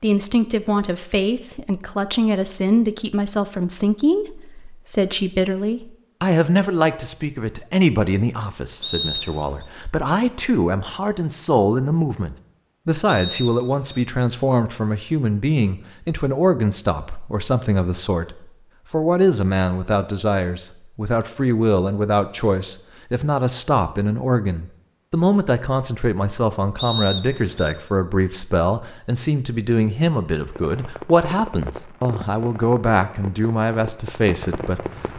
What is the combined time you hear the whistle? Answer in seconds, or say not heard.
3 s.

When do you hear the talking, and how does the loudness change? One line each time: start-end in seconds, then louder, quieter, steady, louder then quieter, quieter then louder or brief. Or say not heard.
0.0-34.9 steady.